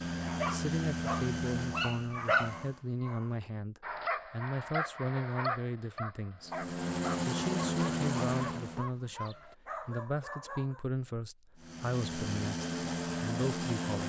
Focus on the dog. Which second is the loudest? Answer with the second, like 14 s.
2 s.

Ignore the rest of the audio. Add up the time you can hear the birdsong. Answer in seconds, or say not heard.
not heard.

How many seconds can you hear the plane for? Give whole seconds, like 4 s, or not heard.
8 s.